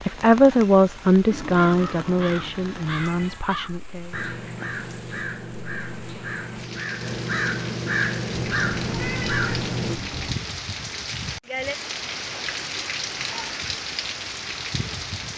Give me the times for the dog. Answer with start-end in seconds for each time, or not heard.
not heard.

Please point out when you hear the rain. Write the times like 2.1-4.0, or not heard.
0.0-15.3.